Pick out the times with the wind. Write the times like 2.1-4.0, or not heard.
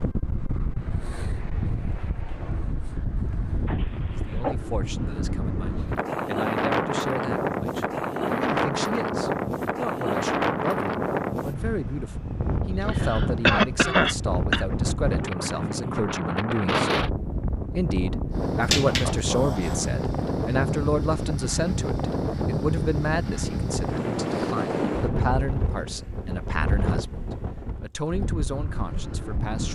0.0-29.6.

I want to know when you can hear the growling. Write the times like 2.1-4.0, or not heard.
3.6-4.5, 18.6-19.9.